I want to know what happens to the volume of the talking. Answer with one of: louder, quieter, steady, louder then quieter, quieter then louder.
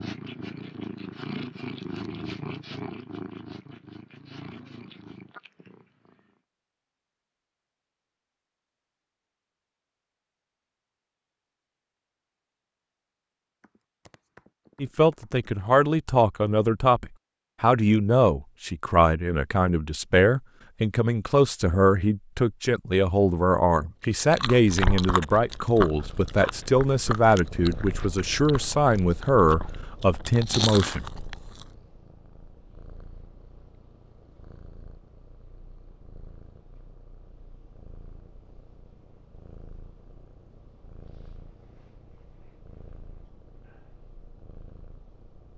steady.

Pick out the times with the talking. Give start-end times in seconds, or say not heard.
14.8-31.1.